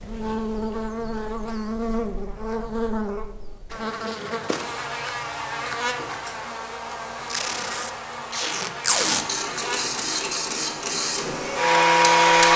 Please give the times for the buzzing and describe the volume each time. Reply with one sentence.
You can hear the buzzing from 0.0 to 12.3 s, getting quieter.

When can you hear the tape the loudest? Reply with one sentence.
The volume of the tape peaks at 9 seconds.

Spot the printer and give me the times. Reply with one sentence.
The printer can be heard from 9.1 to 12.5 s.